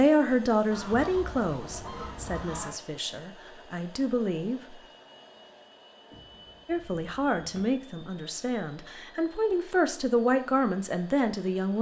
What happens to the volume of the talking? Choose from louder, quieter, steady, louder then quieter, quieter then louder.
quieter then louder.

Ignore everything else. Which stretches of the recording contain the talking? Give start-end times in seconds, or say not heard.
0.0-4.8, 6.7-11.7.